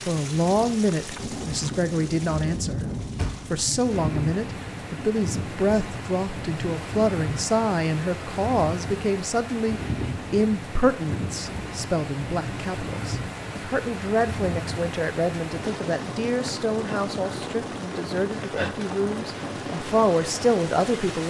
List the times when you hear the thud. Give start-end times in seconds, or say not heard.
3.1-3.6.